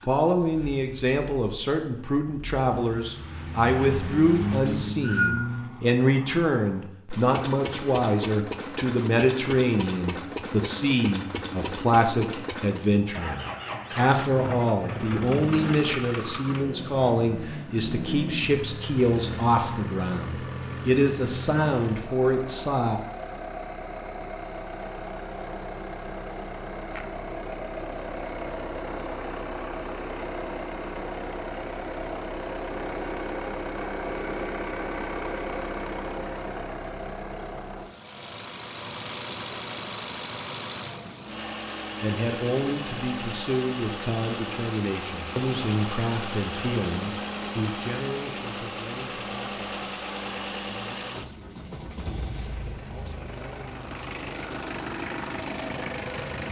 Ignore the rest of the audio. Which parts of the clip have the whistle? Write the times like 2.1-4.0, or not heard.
4.7-5.4.